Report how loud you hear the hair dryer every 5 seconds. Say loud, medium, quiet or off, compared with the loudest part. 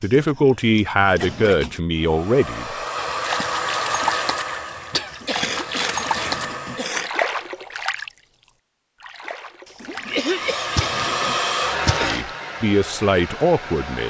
loud, medium, loud.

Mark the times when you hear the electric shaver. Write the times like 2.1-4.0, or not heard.
not heard.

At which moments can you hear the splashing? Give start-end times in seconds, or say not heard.
3.0-8.1, 9.0-11.0, 11.8-12.3.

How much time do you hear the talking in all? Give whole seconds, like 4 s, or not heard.
5 s.